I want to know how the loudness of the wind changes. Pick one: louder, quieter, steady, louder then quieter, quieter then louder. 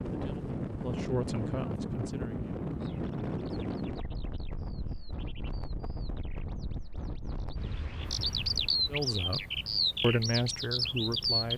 quieter.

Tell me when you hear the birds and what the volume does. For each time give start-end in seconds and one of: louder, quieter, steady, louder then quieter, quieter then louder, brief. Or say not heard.
2.8-11.5 louder.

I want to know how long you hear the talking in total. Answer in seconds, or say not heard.
5 s.